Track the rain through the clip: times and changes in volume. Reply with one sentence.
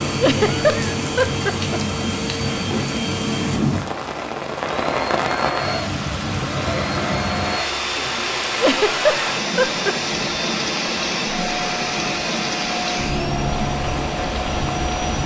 The rain can be heard from 0.0 to 15.2 s, at a steady volume.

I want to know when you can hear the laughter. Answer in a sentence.
The laughter can be heard from 0.2 to 2.0 s and from 8.6 to 9.9 s.